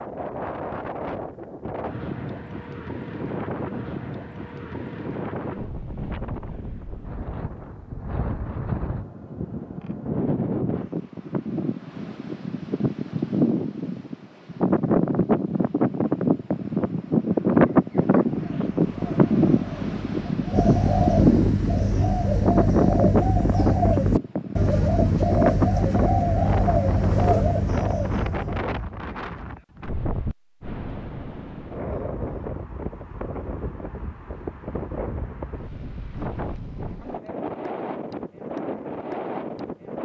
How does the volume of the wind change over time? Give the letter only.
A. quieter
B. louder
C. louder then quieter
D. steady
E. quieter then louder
C.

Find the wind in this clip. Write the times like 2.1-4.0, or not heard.
0.0-40.0.